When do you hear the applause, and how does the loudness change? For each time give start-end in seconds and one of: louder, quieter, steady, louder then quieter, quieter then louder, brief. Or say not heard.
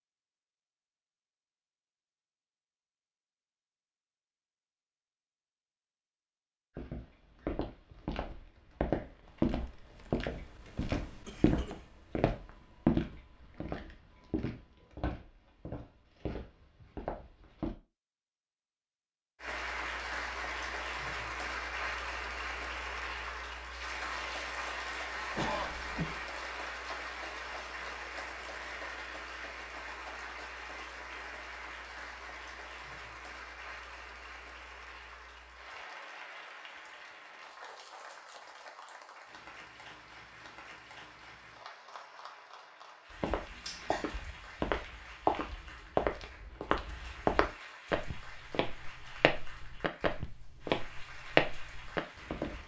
19.4-52.6 quieter.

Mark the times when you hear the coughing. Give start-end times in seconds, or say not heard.
11.2-11.8, 25.3-26.2, 43.2-44.1.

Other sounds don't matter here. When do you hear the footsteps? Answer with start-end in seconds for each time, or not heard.
6.8-17.7, 43.1-52.6.